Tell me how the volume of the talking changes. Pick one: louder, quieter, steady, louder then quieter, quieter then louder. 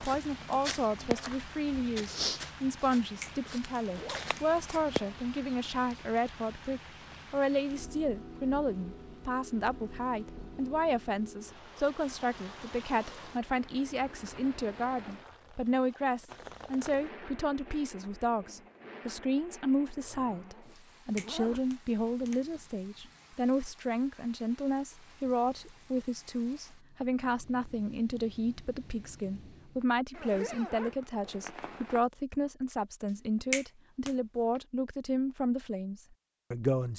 steady.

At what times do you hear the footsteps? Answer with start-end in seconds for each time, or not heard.
0.0-4.8.